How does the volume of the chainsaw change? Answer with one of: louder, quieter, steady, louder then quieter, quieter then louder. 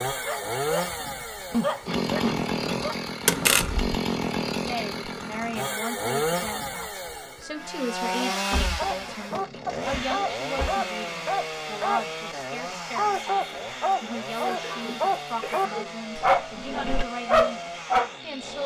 quieter.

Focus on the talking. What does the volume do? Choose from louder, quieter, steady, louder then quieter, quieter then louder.
steady.